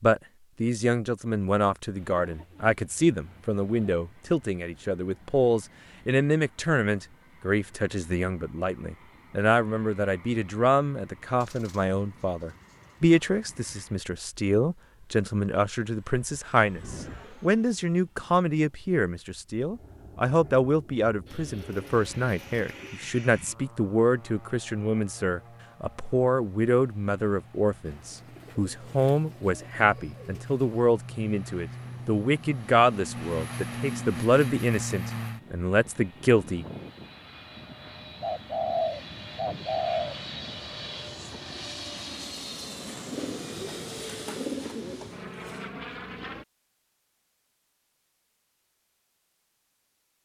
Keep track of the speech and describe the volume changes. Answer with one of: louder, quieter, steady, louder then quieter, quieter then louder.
steady.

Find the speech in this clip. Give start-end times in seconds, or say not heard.
0.0-36.6.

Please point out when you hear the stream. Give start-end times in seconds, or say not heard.
not heard.